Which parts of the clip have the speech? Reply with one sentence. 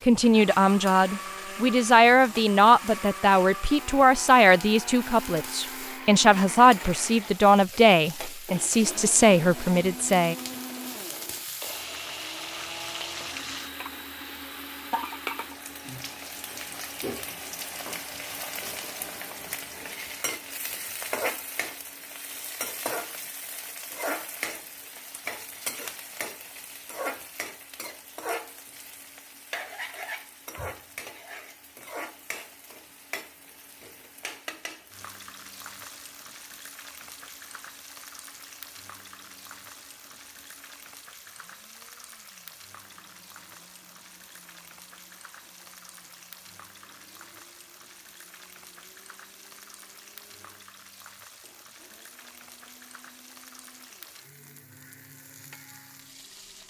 You can hear the speech from 0.1 to 10.3 s.